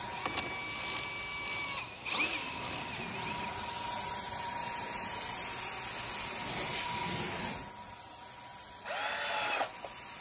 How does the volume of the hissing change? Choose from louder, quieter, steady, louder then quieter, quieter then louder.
louder then quieter.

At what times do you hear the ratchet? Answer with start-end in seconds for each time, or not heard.
0.2-3.0.